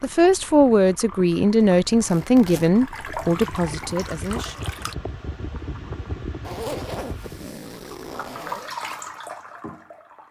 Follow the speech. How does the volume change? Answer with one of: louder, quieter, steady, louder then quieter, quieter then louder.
quieter.